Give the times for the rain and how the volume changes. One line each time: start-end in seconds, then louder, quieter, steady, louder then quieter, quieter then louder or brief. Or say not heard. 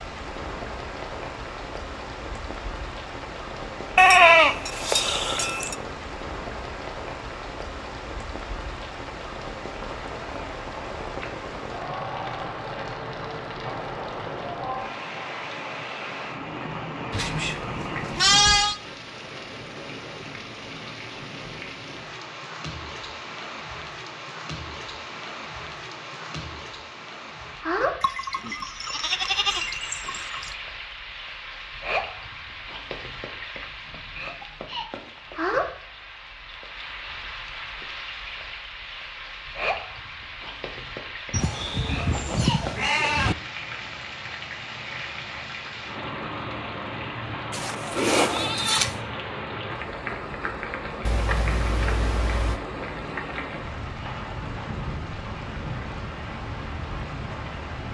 0.0-57.9 steady.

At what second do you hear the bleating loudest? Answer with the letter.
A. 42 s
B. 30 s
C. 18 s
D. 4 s
D.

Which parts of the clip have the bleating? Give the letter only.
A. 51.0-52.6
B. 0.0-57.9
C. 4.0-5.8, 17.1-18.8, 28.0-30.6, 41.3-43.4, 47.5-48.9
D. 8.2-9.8
C.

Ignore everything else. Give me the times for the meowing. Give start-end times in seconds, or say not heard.
51.0-52.6.